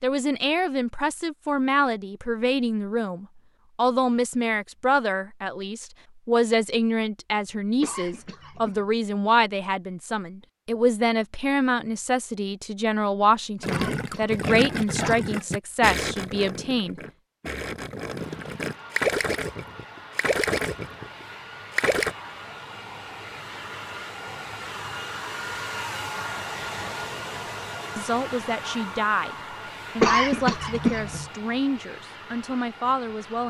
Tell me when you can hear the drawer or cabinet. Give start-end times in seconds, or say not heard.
not heard.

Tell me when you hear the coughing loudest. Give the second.
30 s.